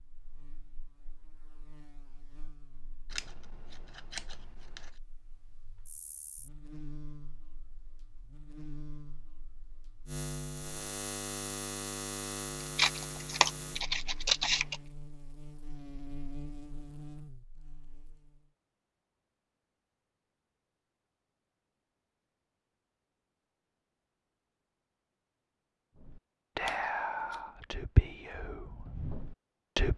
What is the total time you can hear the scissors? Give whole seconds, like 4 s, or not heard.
5 s.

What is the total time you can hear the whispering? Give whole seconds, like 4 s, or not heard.
4 s.